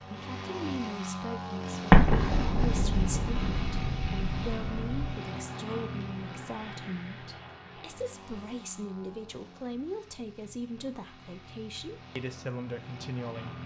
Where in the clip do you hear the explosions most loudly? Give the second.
2 s.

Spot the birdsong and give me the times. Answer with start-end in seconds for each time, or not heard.
not heard.